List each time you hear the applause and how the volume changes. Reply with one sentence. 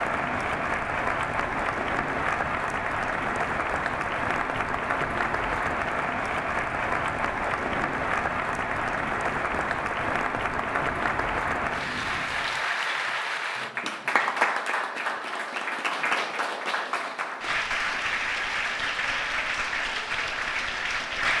You can hear the applause from 0.0 to 21.3 s, at a steady volume.